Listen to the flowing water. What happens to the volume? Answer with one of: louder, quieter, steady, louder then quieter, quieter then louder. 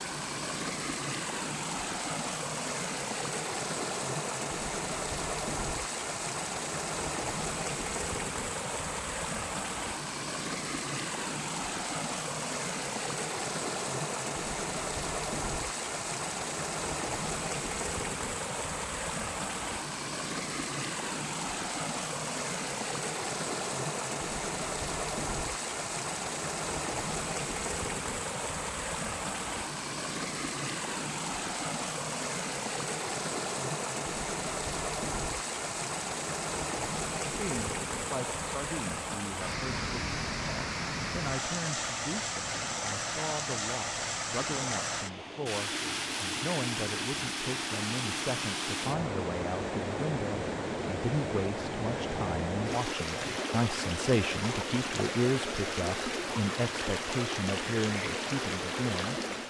steady.